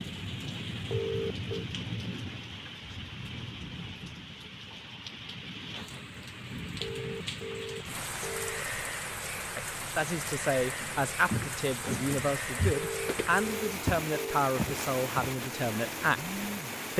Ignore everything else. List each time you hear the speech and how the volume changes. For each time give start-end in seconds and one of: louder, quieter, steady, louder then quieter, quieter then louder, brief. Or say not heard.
9.6-16.2 steady.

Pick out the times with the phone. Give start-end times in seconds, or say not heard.
0.9-1.6, 6.8-8.7, 12.7-14.5.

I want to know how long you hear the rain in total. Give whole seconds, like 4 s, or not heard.
17 s.